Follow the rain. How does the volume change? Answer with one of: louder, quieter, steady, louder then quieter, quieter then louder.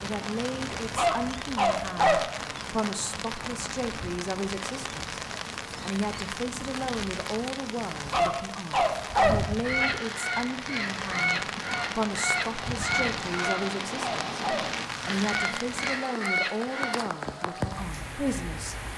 steady.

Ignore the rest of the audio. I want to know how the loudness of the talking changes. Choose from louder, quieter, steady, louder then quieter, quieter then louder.
steady.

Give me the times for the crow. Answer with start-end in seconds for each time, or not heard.
9.4-17.1.